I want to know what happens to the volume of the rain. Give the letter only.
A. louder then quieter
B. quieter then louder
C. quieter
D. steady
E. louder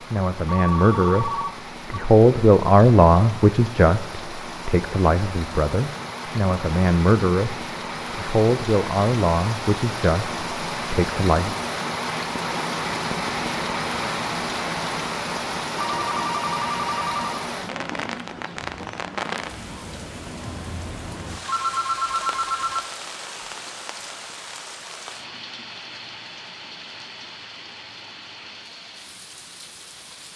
A.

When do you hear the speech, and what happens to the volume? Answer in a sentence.
The speech can be heard from 0.1 to 11.6 s, getting quieter.